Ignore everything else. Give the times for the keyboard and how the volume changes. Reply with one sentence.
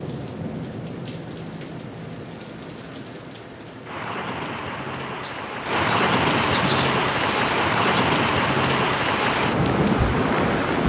You can't hear the keyboard here.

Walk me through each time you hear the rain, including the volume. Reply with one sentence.
The rain can be heard from 0.0 to 10.8 s, getting louder.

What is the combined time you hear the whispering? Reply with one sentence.
You can hear the whispering for 3 seconds altogether.